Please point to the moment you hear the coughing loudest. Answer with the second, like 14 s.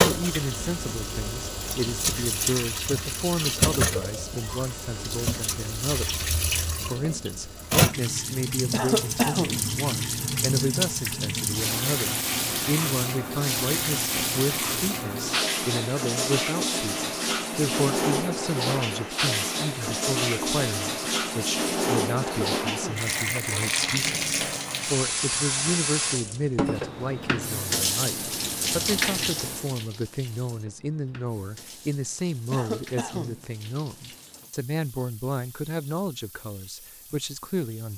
9 s.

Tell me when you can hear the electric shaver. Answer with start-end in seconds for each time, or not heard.
not heard.